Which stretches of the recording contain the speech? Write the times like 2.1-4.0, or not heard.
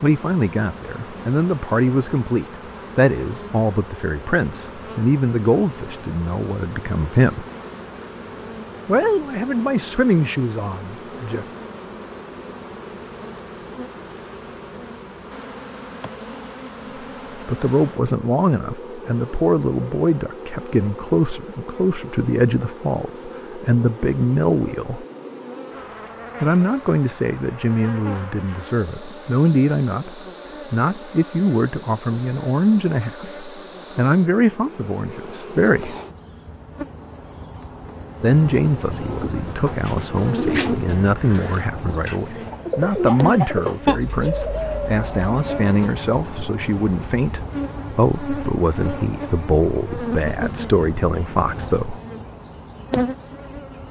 0.0-7.5, 8.8-11.4, 17.4-25.1, 26.4-36.0, 38.2-52.0.